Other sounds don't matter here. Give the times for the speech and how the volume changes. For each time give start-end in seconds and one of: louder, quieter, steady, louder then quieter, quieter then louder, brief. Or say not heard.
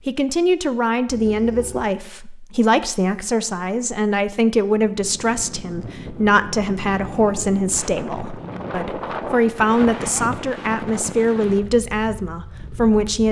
0.1-13.2 steady.